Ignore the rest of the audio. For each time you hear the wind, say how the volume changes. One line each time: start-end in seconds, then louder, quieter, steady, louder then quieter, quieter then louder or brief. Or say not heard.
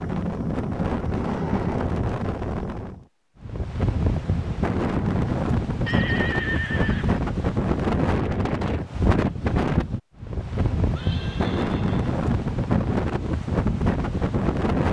0.0-14.8 steady.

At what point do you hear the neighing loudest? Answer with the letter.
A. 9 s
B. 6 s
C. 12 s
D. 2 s
B.